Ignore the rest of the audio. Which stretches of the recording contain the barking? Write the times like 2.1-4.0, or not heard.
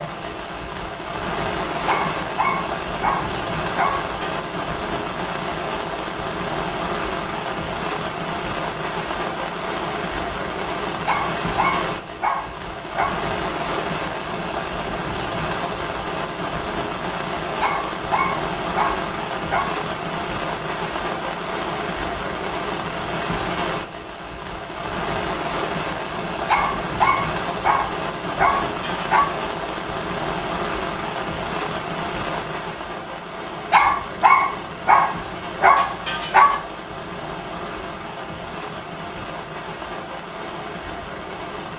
1.9-4.2, 11.1-13.2, 17.6-19.8, 26.4-29.4, 33.7-36.6.